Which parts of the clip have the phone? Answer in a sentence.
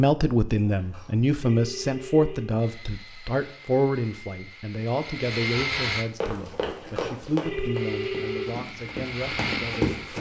You can hear the phone from 0.7 to 2.6 s and from 6.5 to 8.6 s.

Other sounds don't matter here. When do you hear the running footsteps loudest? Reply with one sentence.
The loudest moment of the running footsteps is at 10 seconds.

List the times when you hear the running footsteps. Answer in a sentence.
The running footsteps can be heard from 6.2 to 10.1 s.